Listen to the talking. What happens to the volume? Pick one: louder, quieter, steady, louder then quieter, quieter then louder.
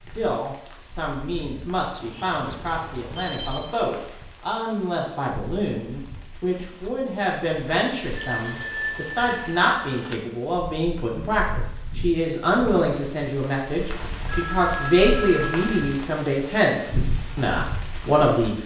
louder.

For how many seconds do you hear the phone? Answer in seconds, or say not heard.
6 s.